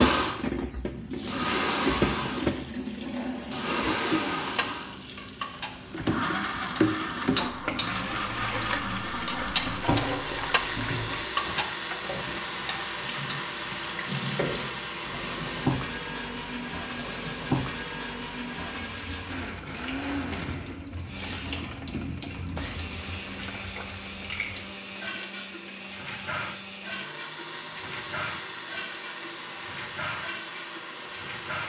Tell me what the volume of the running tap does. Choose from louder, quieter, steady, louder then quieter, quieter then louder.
quieter.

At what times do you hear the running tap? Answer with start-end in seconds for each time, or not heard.
0.0-31.6.